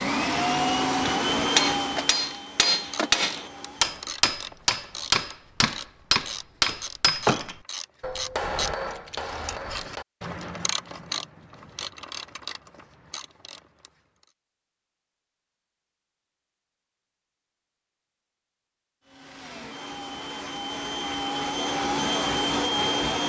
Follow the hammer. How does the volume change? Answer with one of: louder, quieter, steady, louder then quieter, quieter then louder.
quieter.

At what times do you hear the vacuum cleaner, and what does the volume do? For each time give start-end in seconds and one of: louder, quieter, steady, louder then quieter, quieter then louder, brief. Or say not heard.
0.0-4.0 quieter
19.1-23.2 louder.